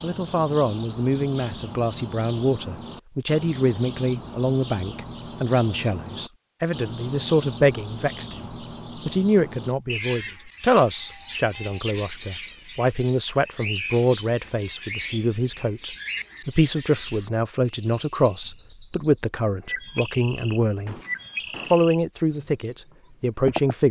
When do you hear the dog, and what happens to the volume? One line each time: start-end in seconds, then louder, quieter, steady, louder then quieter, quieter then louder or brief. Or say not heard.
not heard.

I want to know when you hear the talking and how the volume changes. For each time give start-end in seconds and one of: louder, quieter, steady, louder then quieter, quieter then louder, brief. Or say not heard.
0.0-20.9 steady
21.7-23.8 brief.